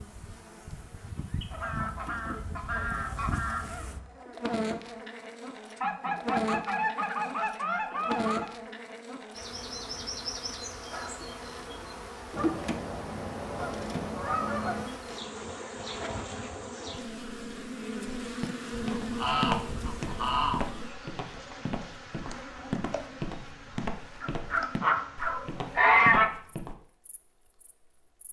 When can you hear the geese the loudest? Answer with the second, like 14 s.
26 s.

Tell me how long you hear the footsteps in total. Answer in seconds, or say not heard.
9 s.